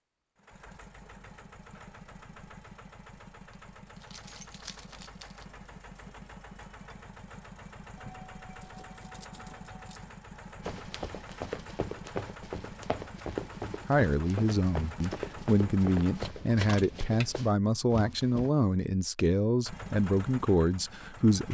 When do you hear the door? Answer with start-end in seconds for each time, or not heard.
not heard.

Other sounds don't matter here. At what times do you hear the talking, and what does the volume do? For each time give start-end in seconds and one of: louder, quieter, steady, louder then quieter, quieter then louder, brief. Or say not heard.
13.8-21.4 steady.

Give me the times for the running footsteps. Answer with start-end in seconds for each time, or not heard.
10.6-18.5.